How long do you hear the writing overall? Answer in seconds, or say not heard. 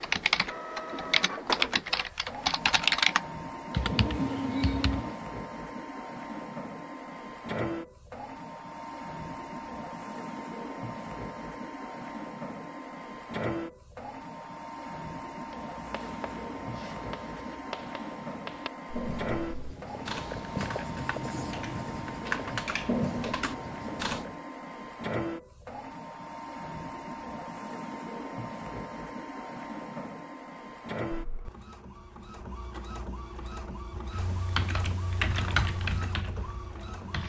9 s.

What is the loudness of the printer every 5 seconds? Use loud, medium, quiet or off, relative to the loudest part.
loud, loud, loud, loud, loud, loud, loud, medium.